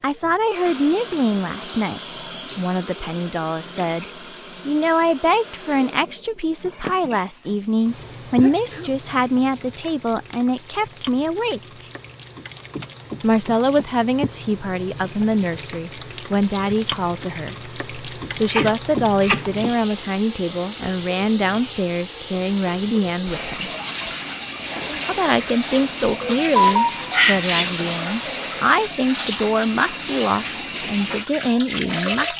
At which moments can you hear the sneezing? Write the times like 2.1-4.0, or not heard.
8.4-8.9, 18.4-19.4, 26.2-27.8.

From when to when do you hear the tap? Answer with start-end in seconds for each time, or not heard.
0.1-32.3.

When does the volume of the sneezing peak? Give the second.
27 s.